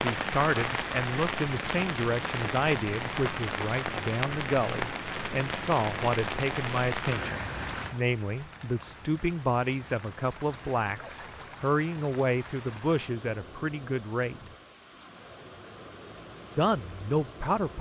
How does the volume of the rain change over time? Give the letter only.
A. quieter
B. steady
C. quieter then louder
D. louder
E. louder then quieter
A.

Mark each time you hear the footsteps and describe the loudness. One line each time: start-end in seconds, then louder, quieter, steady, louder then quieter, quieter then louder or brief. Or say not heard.
not heard.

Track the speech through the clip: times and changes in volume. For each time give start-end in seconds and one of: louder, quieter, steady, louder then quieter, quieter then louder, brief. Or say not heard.
0.0-14.4 steady
16.6-17.7 brief.